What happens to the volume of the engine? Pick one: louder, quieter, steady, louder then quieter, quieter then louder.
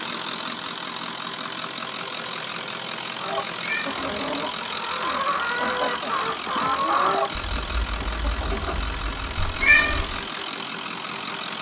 steady.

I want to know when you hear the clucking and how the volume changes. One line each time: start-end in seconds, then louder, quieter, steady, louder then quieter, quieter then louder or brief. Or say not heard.
3.1-10.0 louder then quieter.